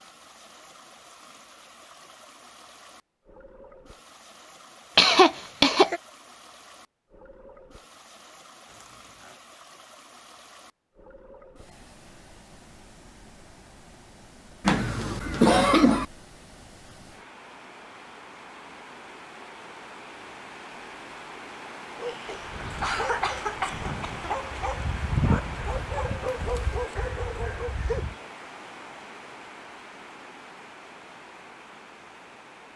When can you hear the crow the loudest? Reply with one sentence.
The volume of the crow peaks at 25 seconds.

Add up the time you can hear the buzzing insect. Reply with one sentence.
You can't hear the buzzing insect here.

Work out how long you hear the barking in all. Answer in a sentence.
You can hear the barking for 6 seconds altogether.